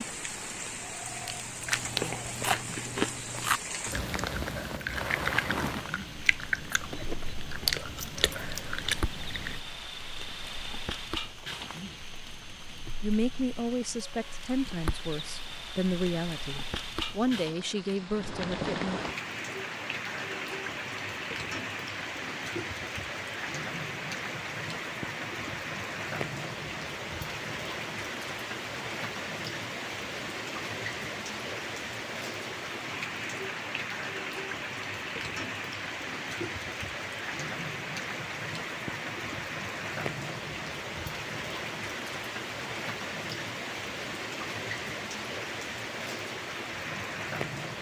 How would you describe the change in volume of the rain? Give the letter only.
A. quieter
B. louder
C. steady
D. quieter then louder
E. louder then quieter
C.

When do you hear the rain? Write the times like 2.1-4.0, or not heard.
0.0-47.7.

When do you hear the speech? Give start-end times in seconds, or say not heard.
13.0-19.0.